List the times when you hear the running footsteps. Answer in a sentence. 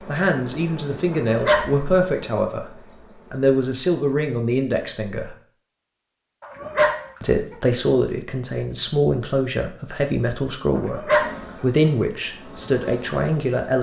The running footsteps can't be heard in this clip.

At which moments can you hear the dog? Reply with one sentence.
The dog can be heard from 1.1 to 2.2 s, from 6.4 to 7.5 s and from 10.8 to 11.9 s.